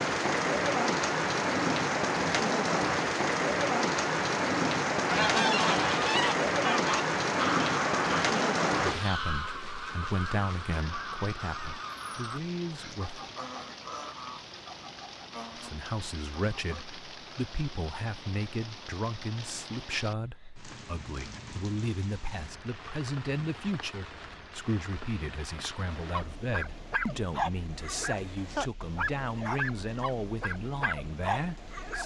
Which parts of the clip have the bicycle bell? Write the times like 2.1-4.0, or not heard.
not heard.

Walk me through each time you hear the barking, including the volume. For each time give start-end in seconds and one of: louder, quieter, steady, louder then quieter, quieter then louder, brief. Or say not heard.
25.9-32.0 steady.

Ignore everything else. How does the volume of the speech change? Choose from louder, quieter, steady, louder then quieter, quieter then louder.
steady.